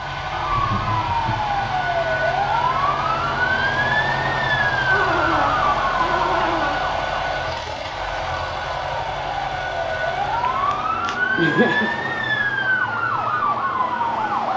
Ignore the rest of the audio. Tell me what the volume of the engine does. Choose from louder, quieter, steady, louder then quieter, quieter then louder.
steady.